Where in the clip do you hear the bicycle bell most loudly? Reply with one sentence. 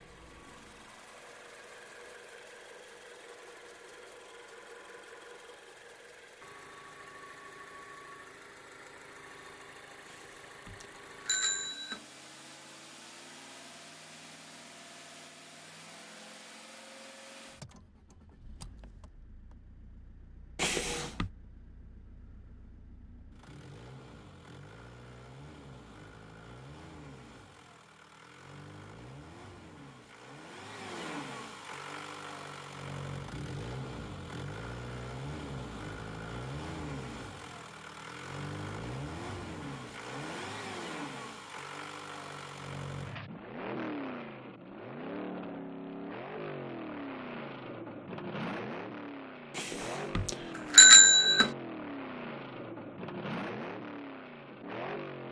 The loudest moment of the bicycle bell is at 51 seconds.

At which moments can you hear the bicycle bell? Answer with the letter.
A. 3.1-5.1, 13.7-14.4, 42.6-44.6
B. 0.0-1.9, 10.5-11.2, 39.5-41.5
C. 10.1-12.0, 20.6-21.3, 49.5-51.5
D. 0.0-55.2
C.